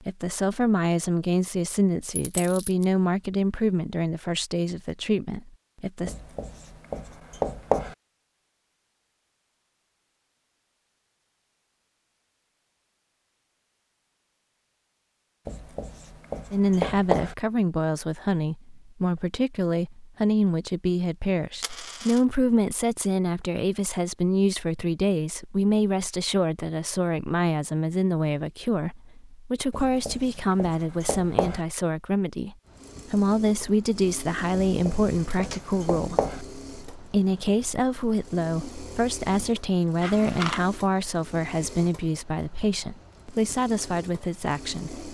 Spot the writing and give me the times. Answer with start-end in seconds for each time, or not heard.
6.0-8.0, 15.4-17.4, 29.7-31.6, 34.6-36.4.